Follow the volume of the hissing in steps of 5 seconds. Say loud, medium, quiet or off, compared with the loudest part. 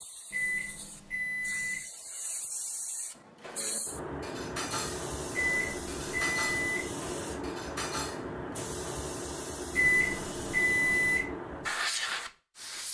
medium, loud, loud.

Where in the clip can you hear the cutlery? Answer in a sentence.
You can hear the cutlery from 3.1 to 8.7 s.